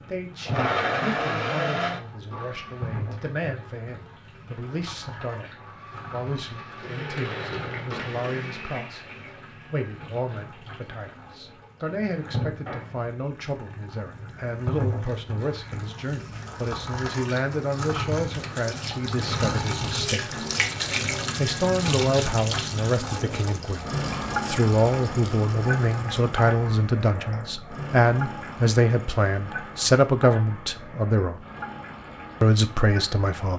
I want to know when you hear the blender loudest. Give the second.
1 s.